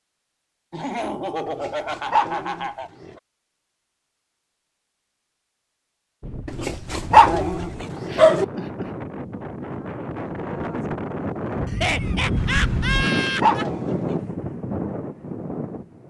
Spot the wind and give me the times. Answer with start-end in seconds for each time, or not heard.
6.2-16.0.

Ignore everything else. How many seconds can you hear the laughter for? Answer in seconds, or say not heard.
5 s.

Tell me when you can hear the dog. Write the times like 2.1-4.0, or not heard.
1.4-3.1, 6.5-8.4, 12.8-14.0.